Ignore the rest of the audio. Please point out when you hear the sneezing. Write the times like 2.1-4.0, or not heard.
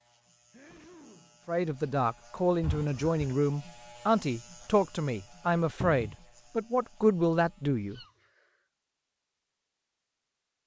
0.5-1.4, 7.9-8.6.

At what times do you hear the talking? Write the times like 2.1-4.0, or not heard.
1.4-8.0.